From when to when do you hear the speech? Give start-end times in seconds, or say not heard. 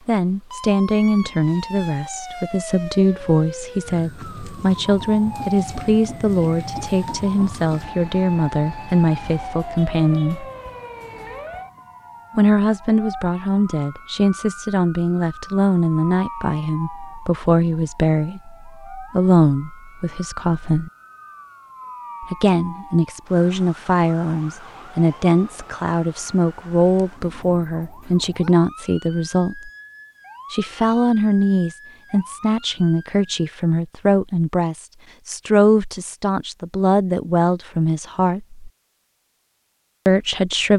0.1-10.4, 12.3-20.9, 22.2-29.7, 30.5-38.6, 40.0-40.7.